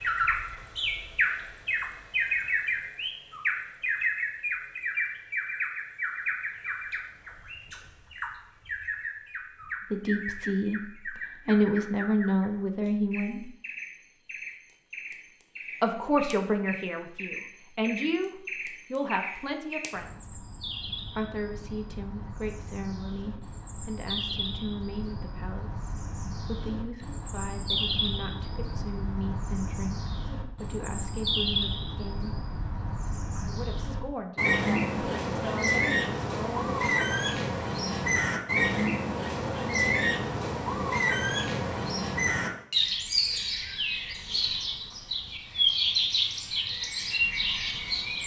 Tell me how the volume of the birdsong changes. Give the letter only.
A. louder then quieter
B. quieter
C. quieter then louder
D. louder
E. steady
C.